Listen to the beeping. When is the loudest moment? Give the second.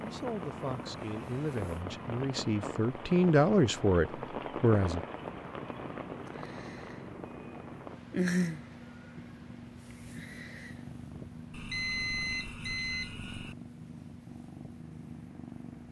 12 s.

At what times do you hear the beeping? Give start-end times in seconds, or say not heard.
11.5-13.6.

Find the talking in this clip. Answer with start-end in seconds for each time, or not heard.
0.0-5.0.